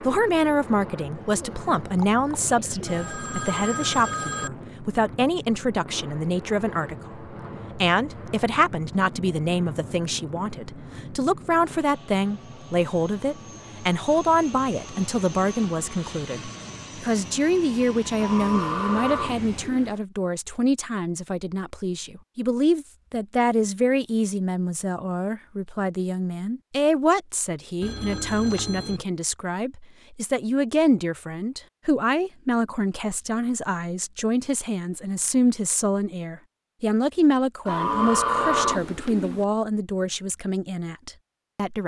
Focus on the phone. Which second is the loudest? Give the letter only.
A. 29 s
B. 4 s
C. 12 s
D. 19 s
B.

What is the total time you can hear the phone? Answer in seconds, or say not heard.
3 s.